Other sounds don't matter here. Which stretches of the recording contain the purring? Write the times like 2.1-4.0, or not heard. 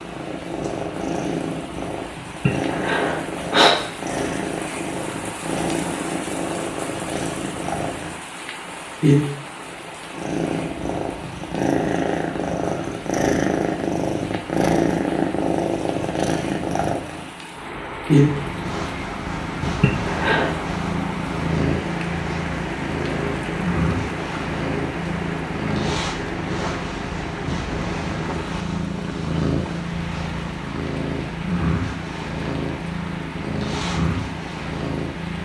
0.0-35.3.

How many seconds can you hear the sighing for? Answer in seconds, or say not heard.
2 s.